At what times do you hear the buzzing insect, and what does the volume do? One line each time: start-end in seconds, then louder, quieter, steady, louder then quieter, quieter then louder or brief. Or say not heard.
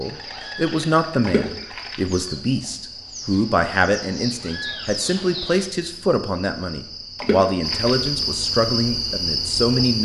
0.0-10.0 louder.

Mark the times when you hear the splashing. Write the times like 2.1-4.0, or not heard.
1.2-2.2, 7.2-8.1.